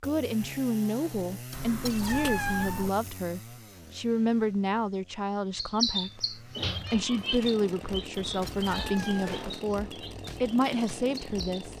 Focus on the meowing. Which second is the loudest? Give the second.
2 s.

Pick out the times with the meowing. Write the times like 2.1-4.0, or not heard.
1.5-2.9, 8.1-9.5.